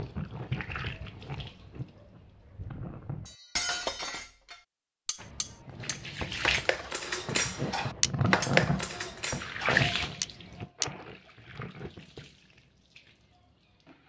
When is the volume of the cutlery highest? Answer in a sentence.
The volume of the cutlery peaks at 8 seconds.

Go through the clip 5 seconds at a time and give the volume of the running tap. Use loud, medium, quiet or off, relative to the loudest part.
medium, loud, quiet.